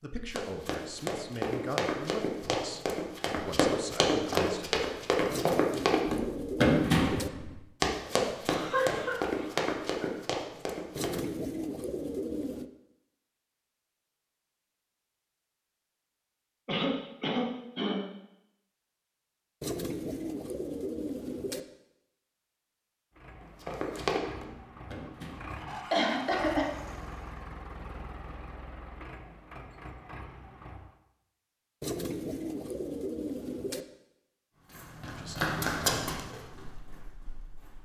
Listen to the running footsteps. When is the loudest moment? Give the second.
7 s.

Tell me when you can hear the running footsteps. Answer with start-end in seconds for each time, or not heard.
0.3-11.2, 23.4-25.6, 34.6-37.8.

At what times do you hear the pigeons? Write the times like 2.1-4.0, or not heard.
5.2-7.3, 10.9-12.7, 19.6-21.6, 31.8-33.9.